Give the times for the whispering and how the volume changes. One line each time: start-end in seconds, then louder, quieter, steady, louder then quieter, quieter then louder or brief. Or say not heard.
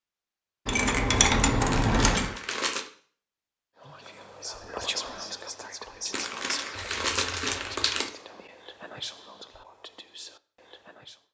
3.8-11.2 quieter.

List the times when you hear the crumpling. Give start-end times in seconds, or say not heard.
1.7-2.9, 6.1-8.1.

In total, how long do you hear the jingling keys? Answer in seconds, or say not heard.
3 s.